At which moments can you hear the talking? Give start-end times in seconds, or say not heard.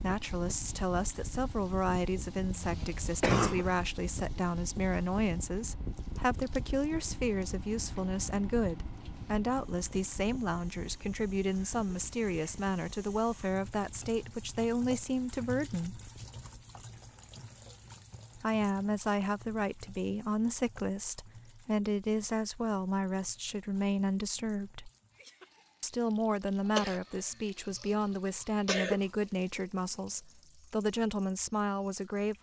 0.0-16.0, 18.4-24.9, 25.8-32.3.